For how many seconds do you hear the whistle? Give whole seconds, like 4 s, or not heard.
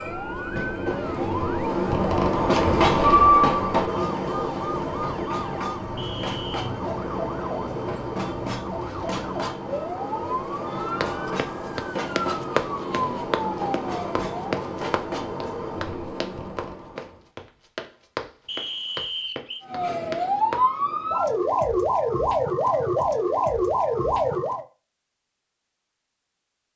2 s.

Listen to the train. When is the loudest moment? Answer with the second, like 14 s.
3 s.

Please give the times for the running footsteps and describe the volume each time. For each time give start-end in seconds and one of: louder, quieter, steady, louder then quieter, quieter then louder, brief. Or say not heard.
11.0-20.7 quieter.